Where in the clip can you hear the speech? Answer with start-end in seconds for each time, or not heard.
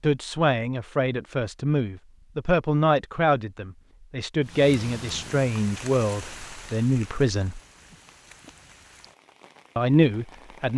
0.0-7.6, 9.8-10.7.